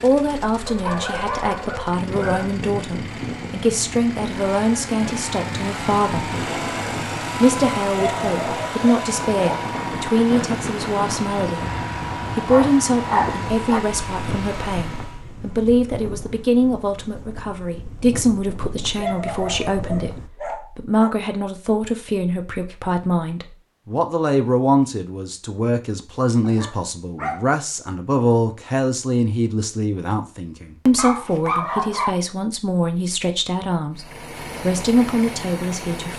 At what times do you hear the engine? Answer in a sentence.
The engine can be heard from 0.0 to 15.2 s and from 33.9 to 36.1 s.